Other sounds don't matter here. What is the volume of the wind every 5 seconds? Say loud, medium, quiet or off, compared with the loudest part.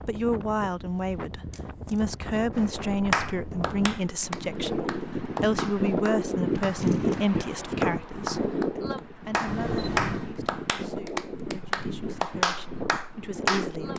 medium, loud, medium.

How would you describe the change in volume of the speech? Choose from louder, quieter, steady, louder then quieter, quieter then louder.
quieter.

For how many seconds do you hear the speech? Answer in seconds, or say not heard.
14 s.